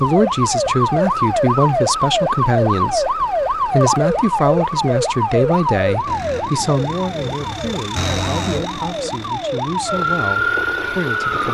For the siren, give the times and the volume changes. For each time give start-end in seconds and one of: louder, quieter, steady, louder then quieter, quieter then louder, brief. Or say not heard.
0.0-11.4 quieter then louder.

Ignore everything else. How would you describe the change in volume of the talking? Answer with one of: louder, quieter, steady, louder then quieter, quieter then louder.
quieter.